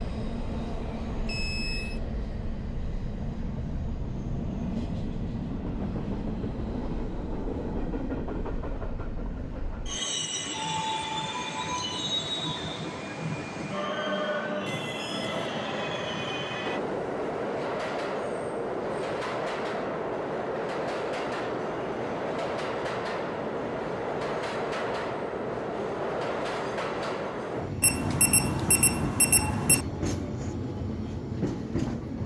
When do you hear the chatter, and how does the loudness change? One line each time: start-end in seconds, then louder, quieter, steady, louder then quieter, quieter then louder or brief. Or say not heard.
not heard.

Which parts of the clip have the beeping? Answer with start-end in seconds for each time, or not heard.
1.2-2.0, 14.7-15.3, 27.8-29.9.